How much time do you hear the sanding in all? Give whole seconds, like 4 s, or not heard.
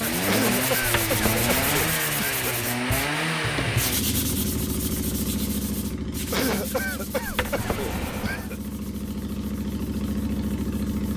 11 s.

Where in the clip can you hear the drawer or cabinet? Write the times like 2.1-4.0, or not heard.
1.0-2.0, 7.2-8.4.